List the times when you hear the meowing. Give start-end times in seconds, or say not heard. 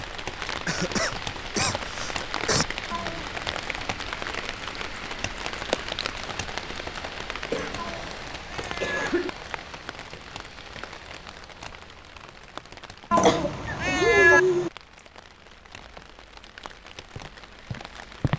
2.9-3.5, 7.8-9.1, 13.1-14.4.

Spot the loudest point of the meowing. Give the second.
14 s.